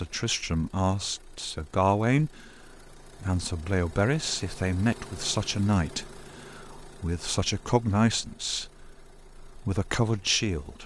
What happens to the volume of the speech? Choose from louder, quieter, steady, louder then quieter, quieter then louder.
steady.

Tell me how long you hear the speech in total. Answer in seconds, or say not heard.
11 s.